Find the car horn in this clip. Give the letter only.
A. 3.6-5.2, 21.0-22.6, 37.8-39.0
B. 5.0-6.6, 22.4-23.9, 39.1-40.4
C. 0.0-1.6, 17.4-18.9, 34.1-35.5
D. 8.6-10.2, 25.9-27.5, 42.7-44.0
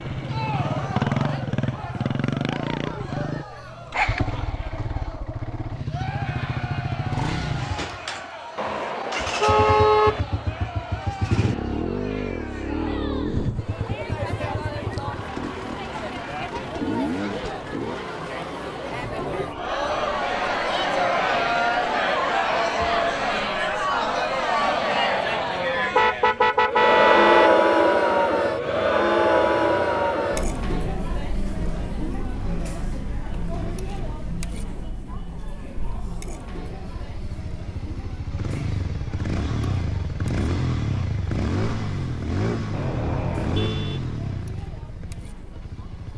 D.